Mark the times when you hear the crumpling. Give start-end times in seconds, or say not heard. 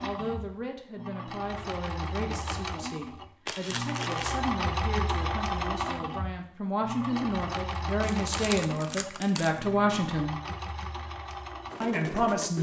3.5-4.4, 8.0-9.6.